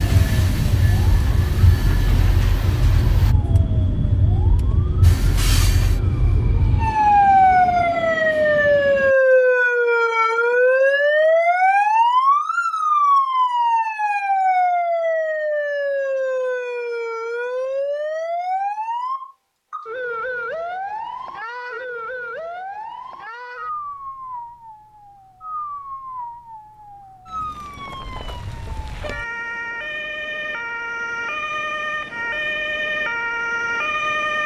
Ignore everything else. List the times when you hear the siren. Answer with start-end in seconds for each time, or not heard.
0.0-34.4.